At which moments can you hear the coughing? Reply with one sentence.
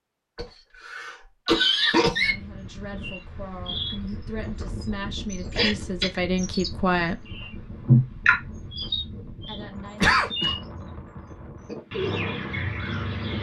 You can hear the coughing from 0.3 to 2.4 s, from 5.5 to 6.2 s and from 10.0 to 10.6 s.